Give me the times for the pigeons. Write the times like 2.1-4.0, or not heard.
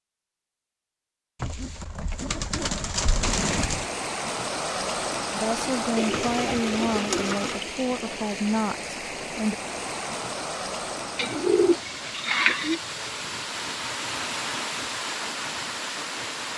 1.4-3.9, 6.0-7.6, 11.2-12.8.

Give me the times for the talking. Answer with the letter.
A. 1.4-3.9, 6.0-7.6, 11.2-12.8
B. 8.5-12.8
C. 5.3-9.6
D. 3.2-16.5
C.